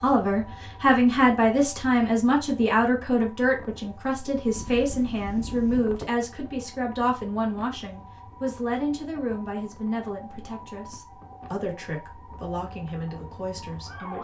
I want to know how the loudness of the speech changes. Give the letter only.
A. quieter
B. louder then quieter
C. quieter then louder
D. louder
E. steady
A.